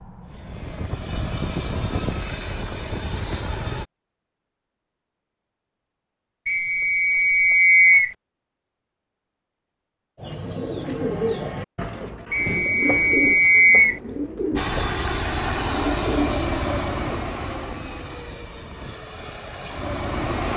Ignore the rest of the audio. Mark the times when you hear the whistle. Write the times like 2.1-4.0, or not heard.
6.5-8.2, 12.3-14.0.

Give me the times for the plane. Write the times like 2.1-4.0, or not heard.
0.0-3.9, 14.6-20.5.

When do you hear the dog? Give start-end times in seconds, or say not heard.
not heard.